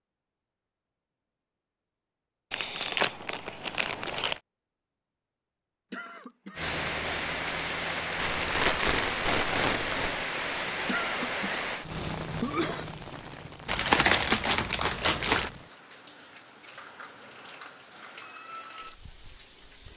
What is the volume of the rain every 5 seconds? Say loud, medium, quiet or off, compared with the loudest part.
off, loud, loud, quiet.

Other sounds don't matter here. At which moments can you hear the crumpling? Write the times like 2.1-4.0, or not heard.
2.5-4.4, 8.2-10.2, 13.7-15.5.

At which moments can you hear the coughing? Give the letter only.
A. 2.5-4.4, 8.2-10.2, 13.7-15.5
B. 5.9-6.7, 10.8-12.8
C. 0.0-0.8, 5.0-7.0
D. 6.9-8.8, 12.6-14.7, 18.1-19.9
B.